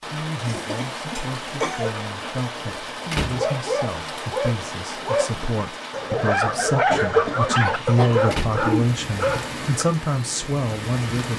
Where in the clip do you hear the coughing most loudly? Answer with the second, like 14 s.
7 s.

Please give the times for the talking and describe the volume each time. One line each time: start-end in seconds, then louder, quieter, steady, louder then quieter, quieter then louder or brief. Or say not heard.
0.1-11.3 louder.